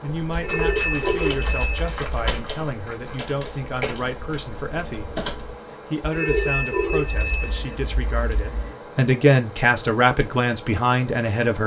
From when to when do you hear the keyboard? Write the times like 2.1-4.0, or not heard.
0.1-5.5.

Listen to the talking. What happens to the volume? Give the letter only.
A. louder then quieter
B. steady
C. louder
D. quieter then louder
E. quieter
C.